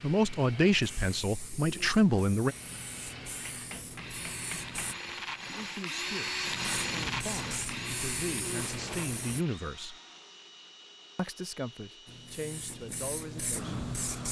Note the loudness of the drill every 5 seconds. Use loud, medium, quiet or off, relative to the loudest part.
medium, loud, quiet.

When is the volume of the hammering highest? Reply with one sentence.
The loudest moment of the hammering is at 5 seconds.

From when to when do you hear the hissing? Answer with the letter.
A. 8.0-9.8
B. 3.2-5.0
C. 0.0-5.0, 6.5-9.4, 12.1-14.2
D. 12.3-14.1
C.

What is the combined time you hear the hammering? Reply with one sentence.
You can hear the hammering for 2 seconds altogether.